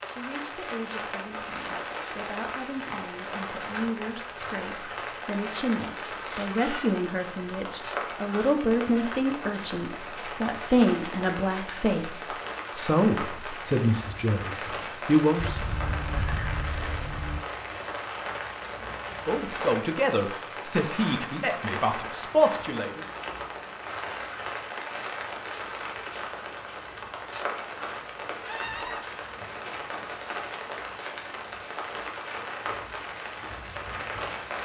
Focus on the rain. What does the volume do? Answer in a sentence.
The volume of the rain stays about the same.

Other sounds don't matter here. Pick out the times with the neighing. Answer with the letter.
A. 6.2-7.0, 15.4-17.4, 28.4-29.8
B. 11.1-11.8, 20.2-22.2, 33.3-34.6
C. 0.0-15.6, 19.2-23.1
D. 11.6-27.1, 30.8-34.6
A.